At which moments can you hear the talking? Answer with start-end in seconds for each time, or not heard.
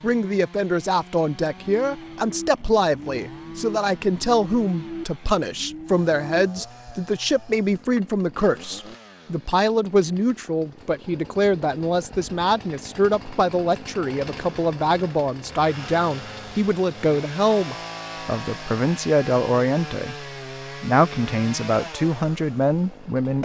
0.0-23.4.